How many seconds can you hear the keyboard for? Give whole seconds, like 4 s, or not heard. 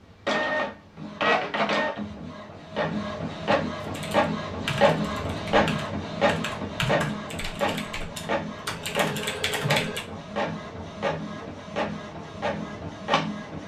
6 s.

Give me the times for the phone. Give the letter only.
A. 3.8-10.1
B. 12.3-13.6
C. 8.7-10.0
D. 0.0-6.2
C.